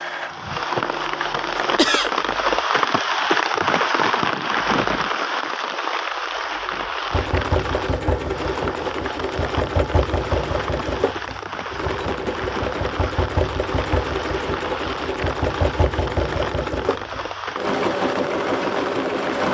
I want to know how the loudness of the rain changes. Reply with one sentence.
The loudness of the rain goes down.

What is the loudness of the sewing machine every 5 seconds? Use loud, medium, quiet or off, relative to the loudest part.
medium, loud, loud, loud.